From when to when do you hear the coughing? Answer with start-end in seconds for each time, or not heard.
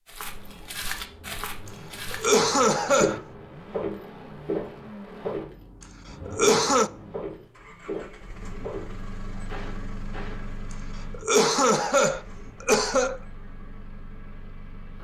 2.1-3.2, 6.2-6.9, 11.1-13.2.